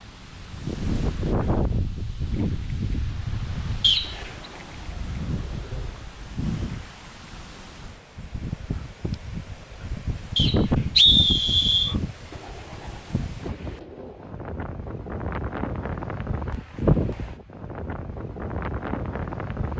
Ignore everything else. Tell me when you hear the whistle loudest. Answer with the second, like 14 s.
11 s.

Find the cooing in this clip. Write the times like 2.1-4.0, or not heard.
4.0-6.0, 12.3-14.3.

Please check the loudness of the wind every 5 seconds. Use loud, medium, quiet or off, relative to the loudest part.
loud, medium, loud, loud.